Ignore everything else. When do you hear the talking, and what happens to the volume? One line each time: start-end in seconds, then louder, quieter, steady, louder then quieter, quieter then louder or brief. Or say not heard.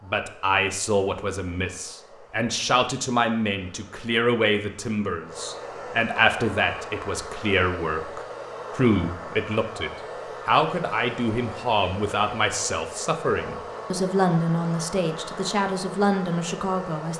0.0-17.1 steady.